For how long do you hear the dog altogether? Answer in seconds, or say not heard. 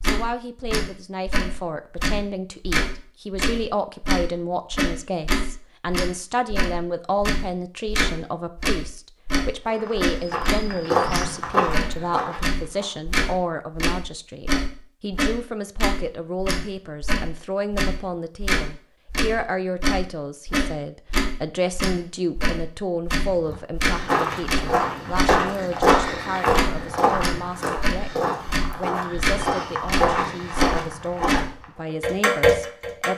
not heard.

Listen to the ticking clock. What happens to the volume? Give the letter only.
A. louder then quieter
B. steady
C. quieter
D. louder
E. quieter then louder
B.